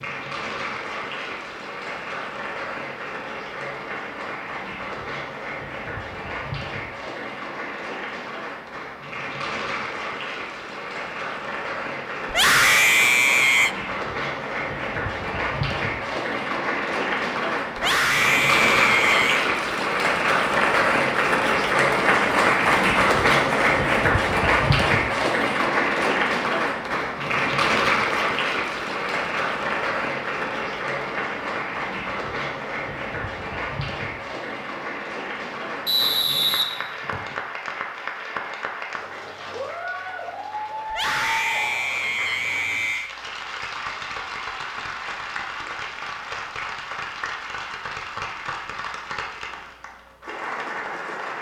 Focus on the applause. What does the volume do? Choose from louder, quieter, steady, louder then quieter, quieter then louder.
louder then quieter.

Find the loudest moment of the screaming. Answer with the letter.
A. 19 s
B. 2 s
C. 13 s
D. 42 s
C.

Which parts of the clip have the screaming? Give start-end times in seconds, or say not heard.
12.2-13.8, 17.8-19.4, 40.9-43.1.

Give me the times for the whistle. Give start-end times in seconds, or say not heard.
35.9-37.4.